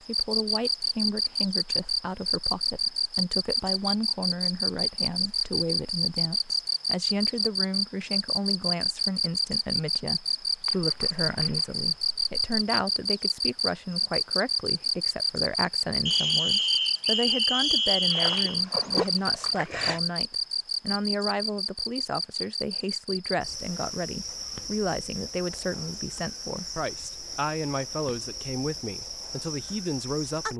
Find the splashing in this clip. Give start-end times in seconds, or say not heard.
10.7-12.4, 18.1-20.0.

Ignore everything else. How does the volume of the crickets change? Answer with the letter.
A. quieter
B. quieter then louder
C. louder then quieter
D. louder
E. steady
A.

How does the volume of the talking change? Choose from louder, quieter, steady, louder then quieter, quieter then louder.
steady.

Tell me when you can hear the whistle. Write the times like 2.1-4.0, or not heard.
16.1-18.6.